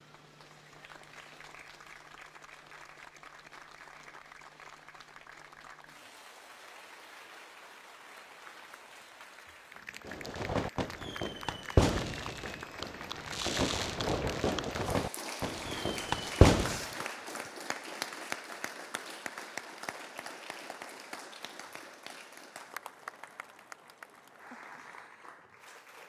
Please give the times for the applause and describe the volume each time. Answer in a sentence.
The applause can be heard from 0.0 to 26.0 s, getting louder then quieter.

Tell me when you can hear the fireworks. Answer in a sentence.
The fireworks can be heard from 10.1 to 16.9 s.